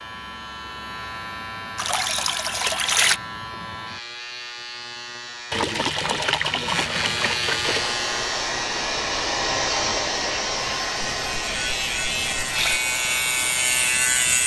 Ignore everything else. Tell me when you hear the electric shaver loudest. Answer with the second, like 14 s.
14 s.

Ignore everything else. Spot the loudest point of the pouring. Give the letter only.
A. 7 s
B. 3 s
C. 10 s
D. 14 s
B.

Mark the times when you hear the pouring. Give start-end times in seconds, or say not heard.
1.8-3.2, 5.5-8.0, 11.0-12.8.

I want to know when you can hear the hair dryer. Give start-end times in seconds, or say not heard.
7.7-14.4.